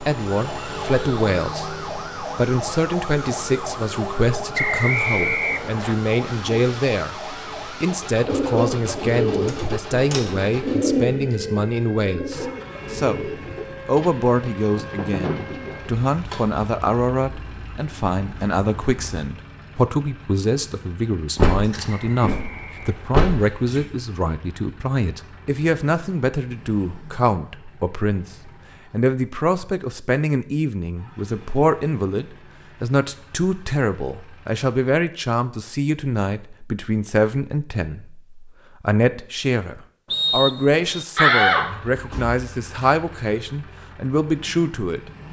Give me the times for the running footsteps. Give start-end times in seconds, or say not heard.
not heard.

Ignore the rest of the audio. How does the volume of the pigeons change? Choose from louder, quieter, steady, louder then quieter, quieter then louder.
quieter.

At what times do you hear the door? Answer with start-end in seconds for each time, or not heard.
9.4-10.3, 21.4-23.9, 41.1-42.9.